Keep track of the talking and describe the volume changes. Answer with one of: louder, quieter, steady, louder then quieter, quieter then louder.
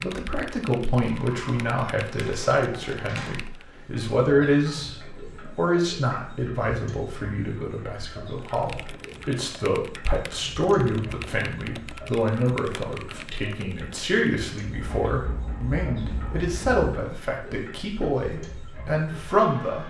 steady.